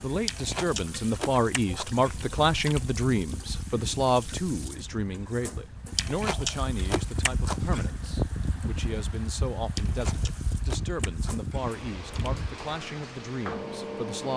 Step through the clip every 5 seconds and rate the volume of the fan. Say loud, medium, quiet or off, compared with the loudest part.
medium, loud, loud.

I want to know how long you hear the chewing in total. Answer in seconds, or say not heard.
7 s.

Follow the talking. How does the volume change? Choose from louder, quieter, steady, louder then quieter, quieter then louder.
quieter.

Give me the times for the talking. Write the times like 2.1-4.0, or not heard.
0.0-14.3.